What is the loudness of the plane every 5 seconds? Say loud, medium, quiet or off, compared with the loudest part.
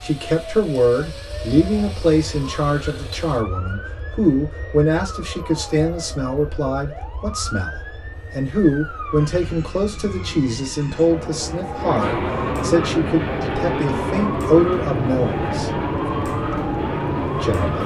quiet, quiet, loud, loud.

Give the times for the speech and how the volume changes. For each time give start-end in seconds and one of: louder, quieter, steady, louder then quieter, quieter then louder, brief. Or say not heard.
0.0-15.7 steady
17.4-17.8 brief.